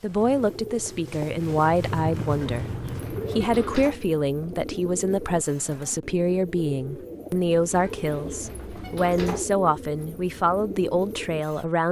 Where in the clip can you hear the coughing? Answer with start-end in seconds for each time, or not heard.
not heard.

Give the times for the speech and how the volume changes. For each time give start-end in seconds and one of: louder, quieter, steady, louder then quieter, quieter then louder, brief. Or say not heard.
0.0-11.8 steady.